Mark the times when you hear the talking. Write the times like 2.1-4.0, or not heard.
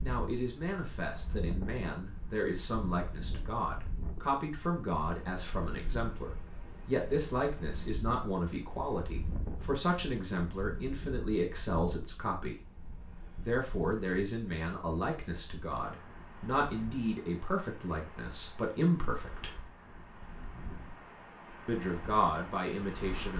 0.0-12.6, 13.3-19.6, 21.6-23.3.